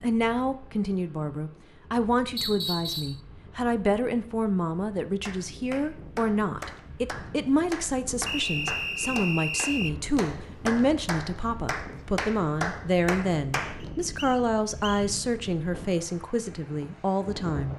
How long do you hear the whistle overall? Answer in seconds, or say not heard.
4 s.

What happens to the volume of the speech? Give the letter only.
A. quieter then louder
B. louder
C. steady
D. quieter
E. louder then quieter
C.